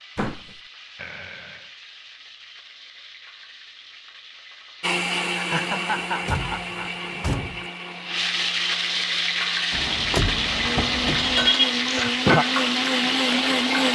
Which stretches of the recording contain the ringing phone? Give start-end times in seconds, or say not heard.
not heard.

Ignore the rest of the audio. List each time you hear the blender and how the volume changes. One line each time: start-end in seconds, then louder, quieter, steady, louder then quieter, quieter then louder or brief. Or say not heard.
4.8-13.8 quieter then louder.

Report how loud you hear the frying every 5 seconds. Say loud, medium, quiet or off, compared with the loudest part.
quiet, loud, loud.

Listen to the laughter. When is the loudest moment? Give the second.
12 s.